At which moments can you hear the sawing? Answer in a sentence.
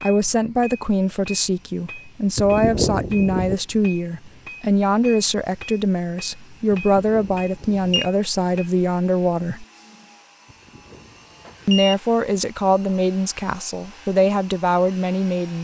The sawing can't be heard in this clip.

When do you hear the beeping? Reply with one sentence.
The beeping can be heard from 2.4 to 3.5 s, from 6.7 to 8.1 s and from 10.5 to 11.9 s.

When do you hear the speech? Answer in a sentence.
The speech can be heard from 0.0 to 9.7 s and from 11.7 to 15.6 s.